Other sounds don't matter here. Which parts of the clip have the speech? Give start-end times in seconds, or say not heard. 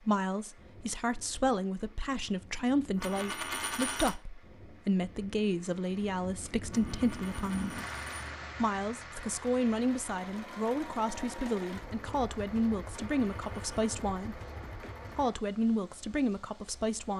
0.0-7.8, 8.6-14.4, 15.2-17.1.